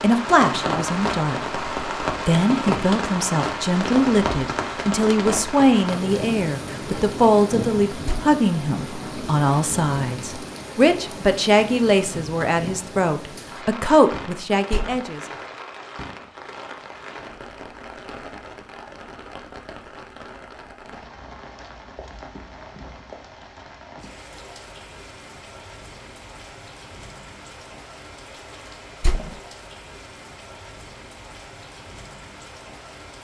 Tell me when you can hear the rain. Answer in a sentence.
The rain can be heard from 0.0 to 33.1 s.